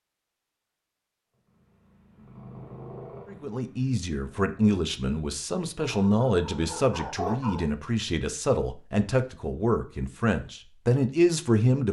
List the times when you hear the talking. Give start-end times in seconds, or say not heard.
3.3-11.8.